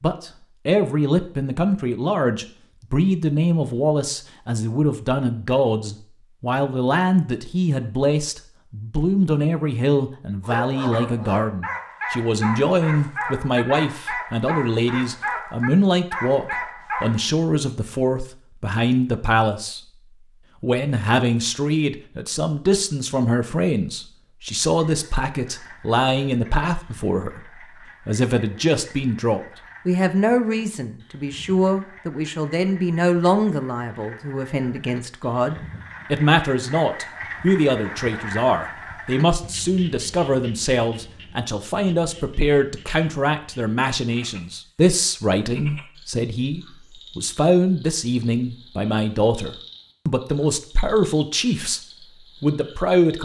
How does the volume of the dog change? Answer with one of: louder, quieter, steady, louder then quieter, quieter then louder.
steady.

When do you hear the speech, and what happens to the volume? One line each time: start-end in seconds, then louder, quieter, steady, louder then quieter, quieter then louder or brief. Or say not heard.
0.0-19.8 steady
20.6-51.8 steady
52.4-53.2 brief.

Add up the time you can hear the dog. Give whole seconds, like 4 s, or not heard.
7 s.